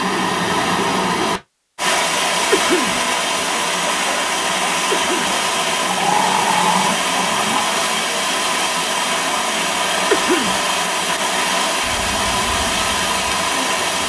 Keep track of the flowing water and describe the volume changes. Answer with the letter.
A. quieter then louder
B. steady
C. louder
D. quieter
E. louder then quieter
B.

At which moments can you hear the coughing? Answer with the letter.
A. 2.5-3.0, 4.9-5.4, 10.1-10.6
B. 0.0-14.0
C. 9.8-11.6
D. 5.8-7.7
A.